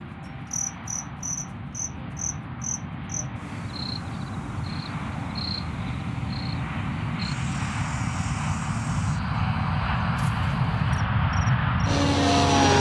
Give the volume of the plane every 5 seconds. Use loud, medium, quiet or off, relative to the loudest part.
quiet, medium, loud.